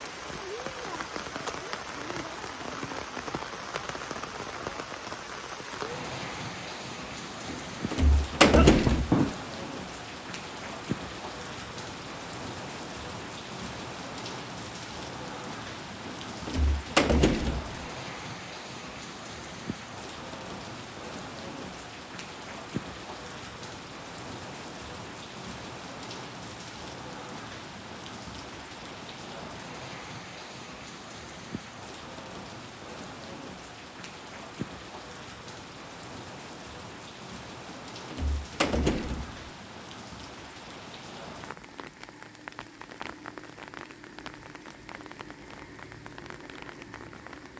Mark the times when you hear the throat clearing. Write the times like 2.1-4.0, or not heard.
8.4-9.3.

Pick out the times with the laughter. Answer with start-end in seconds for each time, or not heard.
not heard.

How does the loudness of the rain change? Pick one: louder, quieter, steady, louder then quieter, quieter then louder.
quieter.